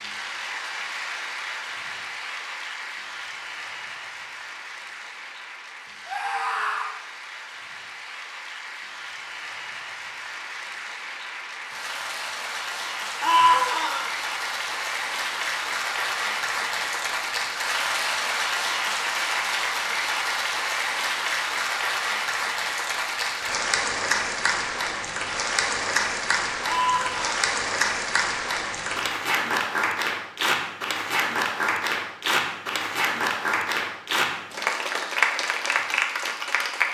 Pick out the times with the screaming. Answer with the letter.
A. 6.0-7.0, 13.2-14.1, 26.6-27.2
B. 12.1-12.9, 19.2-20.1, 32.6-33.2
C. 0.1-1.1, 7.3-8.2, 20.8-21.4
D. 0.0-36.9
A.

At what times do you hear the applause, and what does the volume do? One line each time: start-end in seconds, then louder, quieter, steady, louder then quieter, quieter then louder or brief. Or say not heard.
0.0-36.9 louder.